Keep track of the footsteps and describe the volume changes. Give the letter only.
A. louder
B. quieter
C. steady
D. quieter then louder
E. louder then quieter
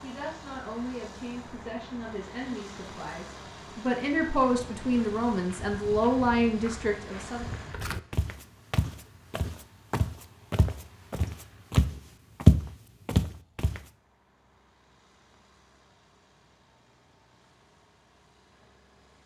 A.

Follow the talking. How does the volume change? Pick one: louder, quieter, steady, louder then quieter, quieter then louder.
louder.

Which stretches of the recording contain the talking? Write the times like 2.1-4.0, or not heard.
0.0-7.5.